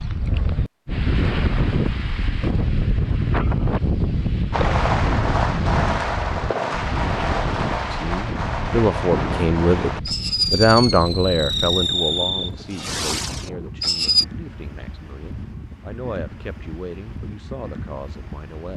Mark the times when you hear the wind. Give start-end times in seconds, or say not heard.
0.0-18.7.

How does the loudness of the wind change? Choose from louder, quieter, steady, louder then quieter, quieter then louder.
quieter.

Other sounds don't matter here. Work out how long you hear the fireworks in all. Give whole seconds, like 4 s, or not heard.
10 s.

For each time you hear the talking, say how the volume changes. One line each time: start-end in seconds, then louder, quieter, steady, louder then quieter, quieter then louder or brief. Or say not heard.
7.9-18.7 quieter.